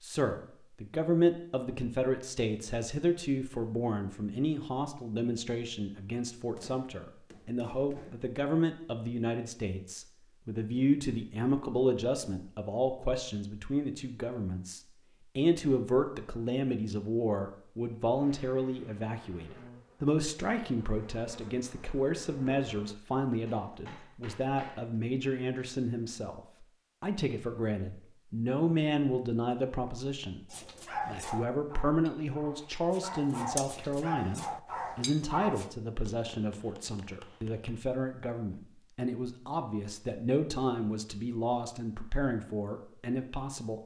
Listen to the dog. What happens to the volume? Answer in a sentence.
The loudness of the dog goes down, then up.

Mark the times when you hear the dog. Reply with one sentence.
You can hear the dog from 30.5 to 35.7 s.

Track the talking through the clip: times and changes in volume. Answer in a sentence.
You can hear the talking from 0.0 to 43.8 s, at a steady volume.